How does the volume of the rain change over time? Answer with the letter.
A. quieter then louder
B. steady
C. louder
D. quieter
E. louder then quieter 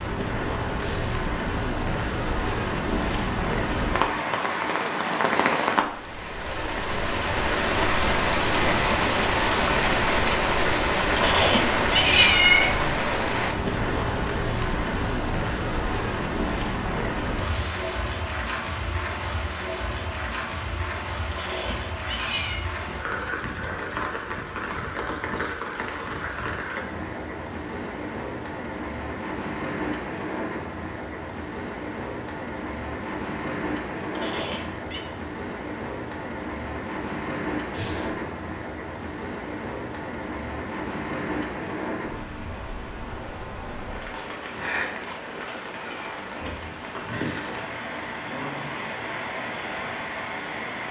D.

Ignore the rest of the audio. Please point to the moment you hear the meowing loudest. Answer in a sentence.
The loudest moment of the meowing is at 12 seconds.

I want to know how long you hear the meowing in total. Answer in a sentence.
The meowing can be heard for 4 seconds in total.